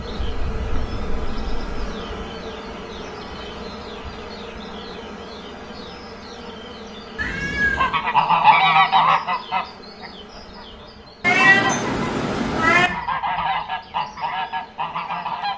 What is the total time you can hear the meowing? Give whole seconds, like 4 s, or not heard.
4 s.